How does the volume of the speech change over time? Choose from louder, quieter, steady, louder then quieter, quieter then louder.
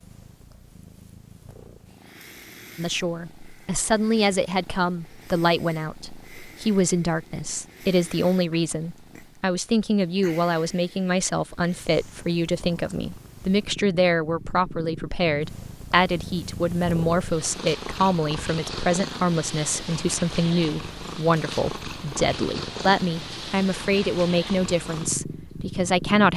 steady.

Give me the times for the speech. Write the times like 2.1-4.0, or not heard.
2.8-26.3.